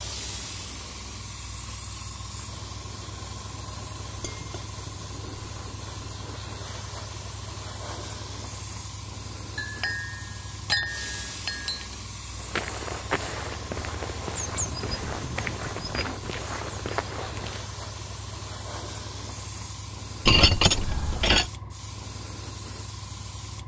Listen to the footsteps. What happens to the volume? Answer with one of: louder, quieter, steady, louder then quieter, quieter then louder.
steady.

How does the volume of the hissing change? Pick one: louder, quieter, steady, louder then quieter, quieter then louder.
steady.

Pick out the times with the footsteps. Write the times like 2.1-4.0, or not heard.
12.3-17.6.